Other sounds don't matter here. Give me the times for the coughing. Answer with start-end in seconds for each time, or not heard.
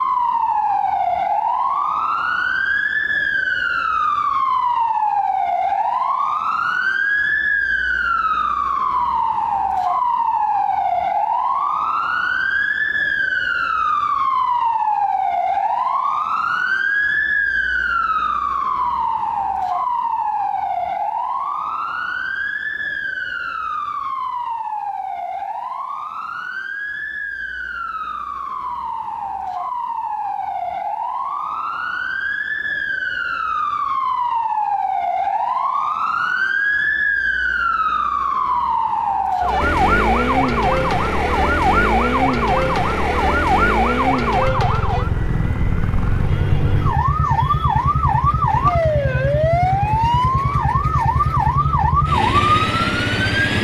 not heard.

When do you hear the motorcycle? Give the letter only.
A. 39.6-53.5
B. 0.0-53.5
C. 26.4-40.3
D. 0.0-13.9
A.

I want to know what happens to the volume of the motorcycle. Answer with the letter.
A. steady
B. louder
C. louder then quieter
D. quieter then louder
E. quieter
A.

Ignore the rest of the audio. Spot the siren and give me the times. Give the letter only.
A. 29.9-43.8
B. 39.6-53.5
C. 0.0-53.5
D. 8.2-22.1
C.